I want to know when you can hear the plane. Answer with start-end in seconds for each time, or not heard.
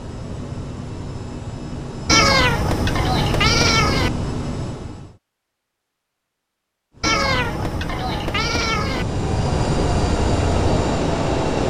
0.0-5.2, 7.0-11.6.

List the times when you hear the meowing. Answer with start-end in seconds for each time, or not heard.
2.0-4.1, 7.0-9.1.